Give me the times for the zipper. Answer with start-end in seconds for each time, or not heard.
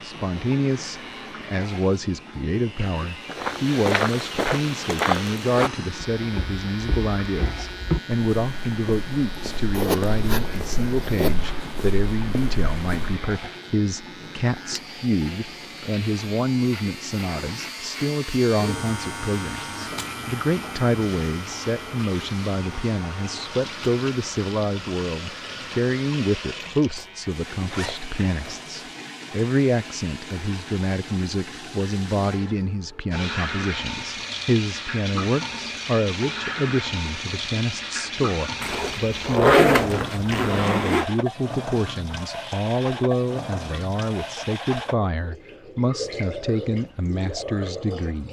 9.7-11.3, 26.9-28.9, 38.6-41.0.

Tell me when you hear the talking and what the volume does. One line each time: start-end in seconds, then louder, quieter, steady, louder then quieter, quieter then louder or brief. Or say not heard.
0.0-48.2 steady.